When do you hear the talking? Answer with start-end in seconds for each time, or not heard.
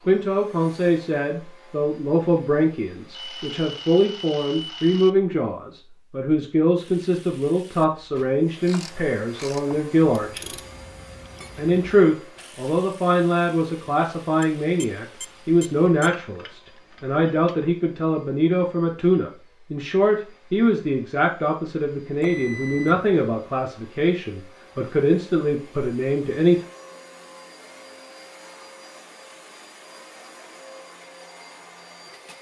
0.1-10.6, 11.6-26.6.